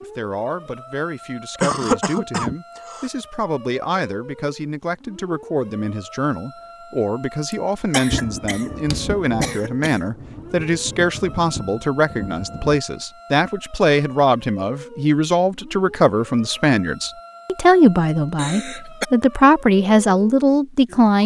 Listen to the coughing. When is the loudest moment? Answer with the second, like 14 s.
2 s.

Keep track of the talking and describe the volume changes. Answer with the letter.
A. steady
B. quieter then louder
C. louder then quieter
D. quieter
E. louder
E.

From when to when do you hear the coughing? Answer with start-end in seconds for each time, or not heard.
1.6-3.1, 7.5-10.1, 18.4-19.1.